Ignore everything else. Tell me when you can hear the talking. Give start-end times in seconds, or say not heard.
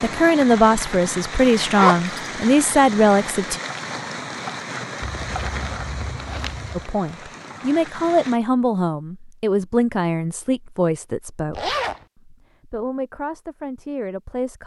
0.0-3.5, 6.8-14.6.